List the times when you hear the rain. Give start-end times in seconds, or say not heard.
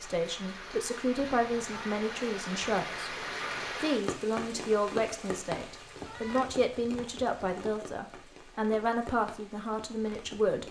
0.0-10.6.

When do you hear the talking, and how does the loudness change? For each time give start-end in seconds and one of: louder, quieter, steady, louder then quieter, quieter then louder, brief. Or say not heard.
0.0-10.6 steady.